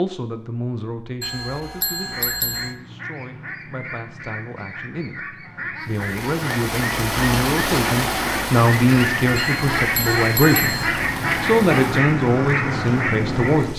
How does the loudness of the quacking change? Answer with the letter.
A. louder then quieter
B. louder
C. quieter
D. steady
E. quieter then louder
B.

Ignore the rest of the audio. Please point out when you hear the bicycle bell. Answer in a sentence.
You can hear the bicycle bell from 1.2 to 2.8 s and from 9.3 to 10.9 s.